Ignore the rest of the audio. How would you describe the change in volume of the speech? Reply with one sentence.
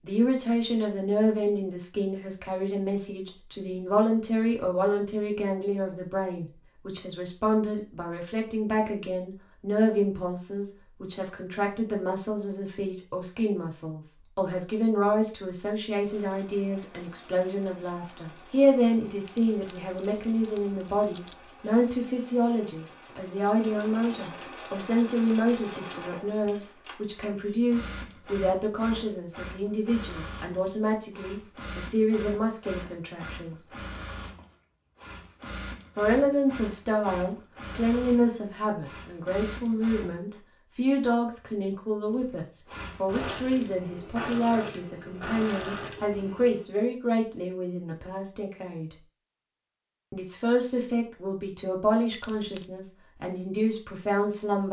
The loudness of the speech stays about the same.